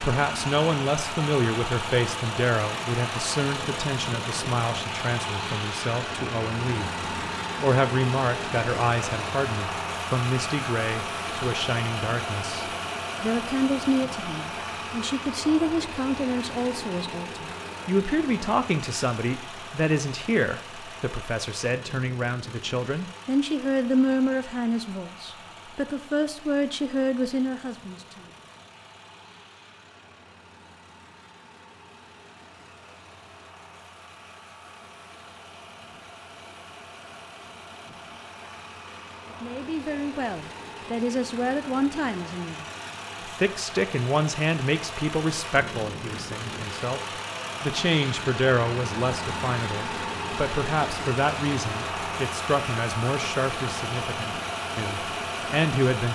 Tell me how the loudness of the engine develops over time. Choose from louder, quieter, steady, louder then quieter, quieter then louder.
quieter then louder.